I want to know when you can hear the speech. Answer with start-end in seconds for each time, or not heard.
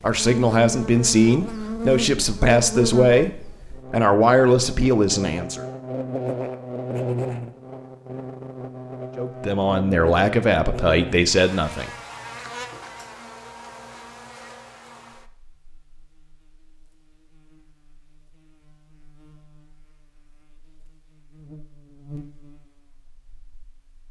0.0-5.7, 9.2-11.9.